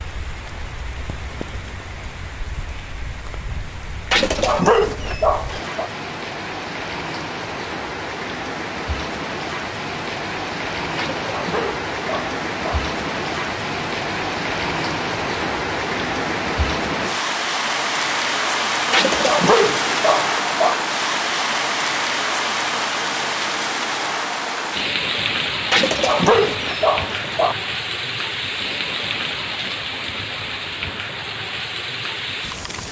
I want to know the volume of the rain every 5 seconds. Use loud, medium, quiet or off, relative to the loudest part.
quiet, medium, loud, loud, loud, loud, medium.